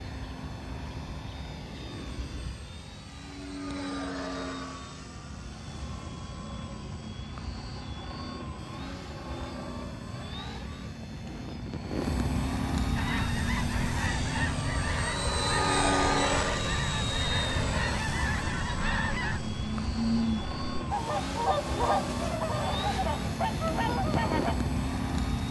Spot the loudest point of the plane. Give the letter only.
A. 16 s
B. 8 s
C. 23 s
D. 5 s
A.